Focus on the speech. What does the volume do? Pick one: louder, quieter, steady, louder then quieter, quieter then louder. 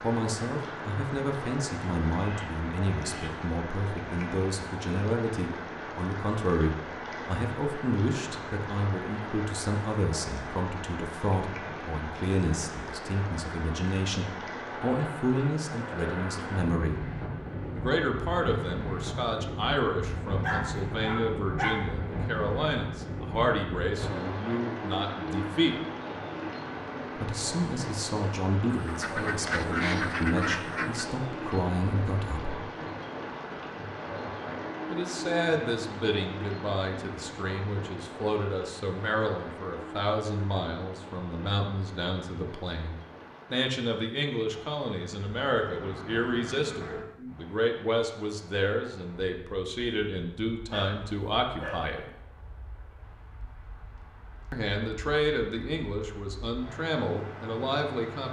steady.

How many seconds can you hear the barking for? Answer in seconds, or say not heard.
3 s.